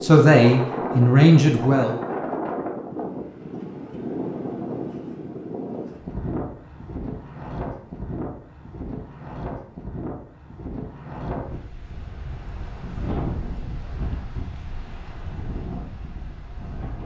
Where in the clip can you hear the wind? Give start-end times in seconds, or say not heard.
0.0-17.0.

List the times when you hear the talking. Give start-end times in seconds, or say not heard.
0.0-2.0.